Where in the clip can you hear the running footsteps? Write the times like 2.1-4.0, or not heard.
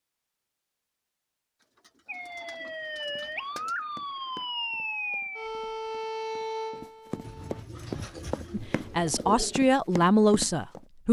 3.1-10.8.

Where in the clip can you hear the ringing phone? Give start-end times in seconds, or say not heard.
not heard.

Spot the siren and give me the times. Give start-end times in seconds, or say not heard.
2.0-7.7.